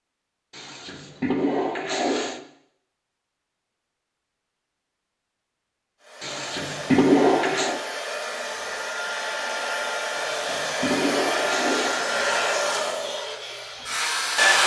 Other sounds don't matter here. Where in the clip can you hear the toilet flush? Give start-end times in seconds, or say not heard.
0.5-2.4, 6.2-7.8, 10.1-12.0.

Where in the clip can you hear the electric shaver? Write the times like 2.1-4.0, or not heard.
not heard.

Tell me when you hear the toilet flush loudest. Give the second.
7 s.